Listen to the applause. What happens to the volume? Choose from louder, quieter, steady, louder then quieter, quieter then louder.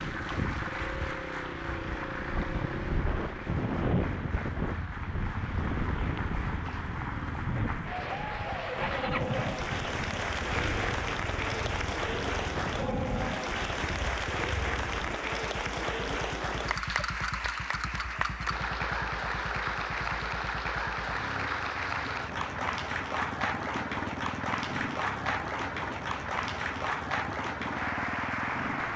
louder.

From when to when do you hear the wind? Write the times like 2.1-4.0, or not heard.
0.0-15.2.